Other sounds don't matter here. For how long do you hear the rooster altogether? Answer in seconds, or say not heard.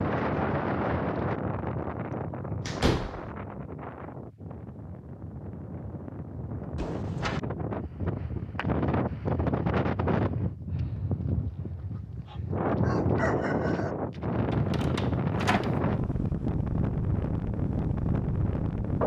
2 s.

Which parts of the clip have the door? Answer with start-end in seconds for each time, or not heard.
2.6-3.3, 6.8-7.4, 14.5-15.8.